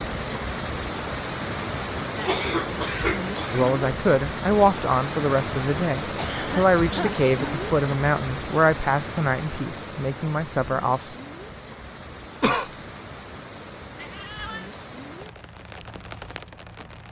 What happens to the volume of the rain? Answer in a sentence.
The volume of the rain goes down.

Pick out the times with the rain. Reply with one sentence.
You can hear the rain from 0.0 to 17.0 s.